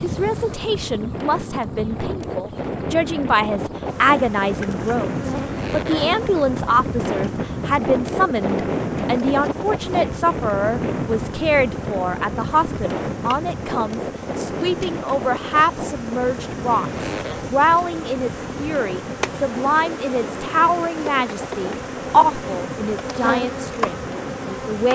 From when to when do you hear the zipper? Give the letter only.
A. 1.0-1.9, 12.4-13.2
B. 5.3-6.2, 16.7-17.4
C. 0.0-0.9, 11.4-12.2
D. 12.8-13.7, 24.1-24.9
B.